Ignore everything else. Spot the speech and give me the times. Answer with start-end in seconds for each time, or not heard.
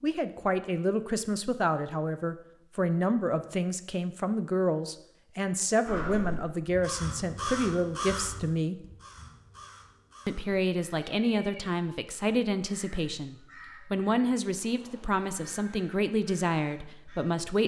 0.0-8.8, 10.2-17.6.